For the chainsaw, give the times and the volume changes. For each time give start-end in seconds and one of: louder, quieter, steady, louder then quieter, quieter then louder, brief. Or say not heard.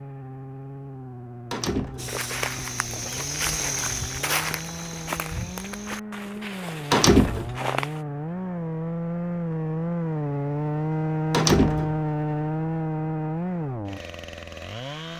0.0-15.1 louder.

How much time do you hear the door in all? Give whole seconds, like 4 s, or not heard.
2 s.